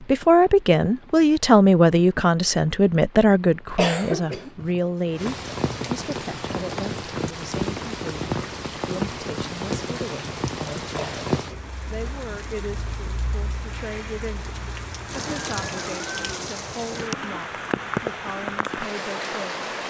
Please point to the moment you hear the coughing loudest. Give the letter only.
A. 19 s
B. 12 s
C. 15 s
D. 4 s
D.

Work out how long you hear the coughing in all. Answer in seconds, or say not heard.
2 s.